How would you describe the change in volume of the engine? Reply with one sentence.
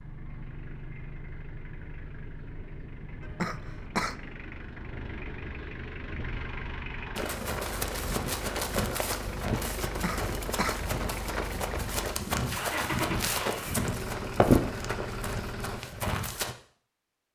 The volume of the engine goes up.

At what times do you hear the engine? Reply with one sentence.
You can hear the engine from 0.0 to 15.8 s.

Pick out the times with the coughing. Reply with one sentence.
You can hear the coughing from 3.2 to 4.2 s and from 9.8 to 10.8 s.